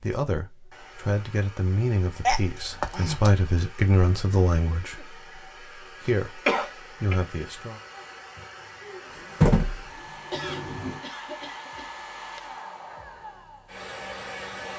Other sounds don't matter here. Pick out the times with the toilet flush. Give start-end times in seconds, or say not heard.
9.2-11.0.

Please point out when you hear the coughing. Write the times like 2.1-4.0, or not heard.
2.2-3.3, 6.0-7.2, 10.3-11.9.